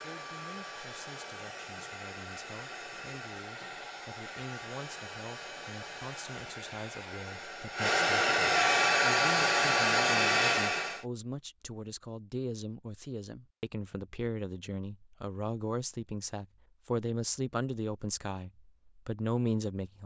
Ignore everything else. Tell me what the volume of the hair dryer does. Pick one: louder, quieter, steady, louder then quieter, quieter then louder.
louder.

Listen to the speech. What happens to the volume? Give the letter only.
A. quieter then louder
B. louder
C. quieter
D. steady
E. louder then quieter
B.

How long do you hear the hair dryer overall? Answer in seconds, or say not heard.
11 s.